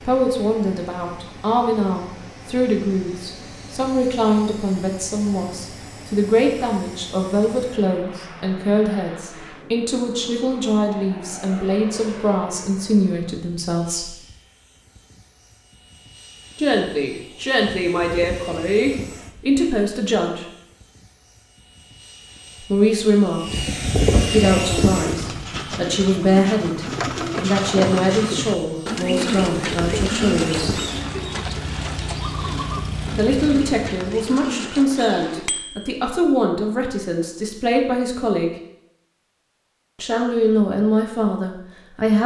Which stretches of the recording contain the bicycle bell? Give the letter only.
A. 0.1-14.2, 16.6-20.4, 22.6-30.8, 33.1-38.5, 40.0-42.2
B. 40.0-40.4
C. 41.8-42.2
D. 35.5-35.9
D.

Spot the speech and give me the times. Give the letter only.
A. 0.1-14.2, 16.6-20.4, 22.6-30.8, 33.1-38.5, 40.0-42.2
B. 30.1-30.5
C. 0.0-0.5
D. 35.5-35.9
A.